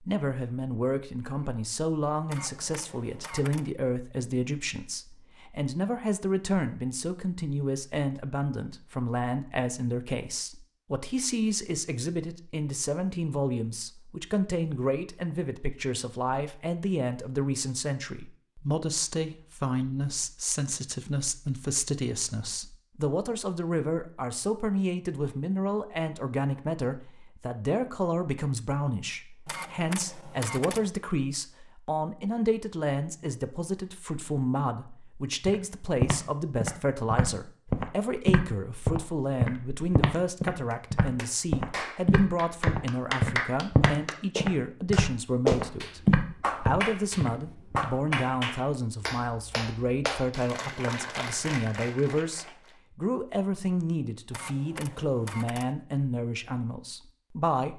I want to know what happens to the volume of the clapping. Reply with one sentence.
The volume of the clapping goes up, then down.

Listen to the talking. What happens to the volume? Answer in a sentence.
The volume of the talking stays about the same.